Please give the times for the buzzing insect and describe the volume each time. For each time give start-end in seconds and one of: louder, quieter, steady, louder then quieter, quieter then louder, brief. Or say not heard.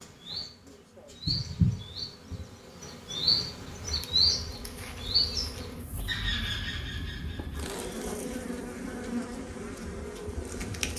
0.0-10.9 louder.